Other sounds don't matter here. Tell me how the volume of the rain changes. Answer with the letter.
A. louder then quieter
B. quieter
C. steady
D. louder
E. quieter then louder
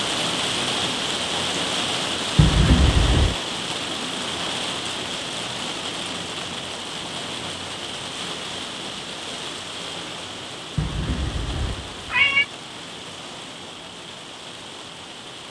B.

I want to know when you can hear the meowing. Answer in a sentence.
You can hear the meowing from 2.4 to 3.4 s and from 10.8 to 12.4 s.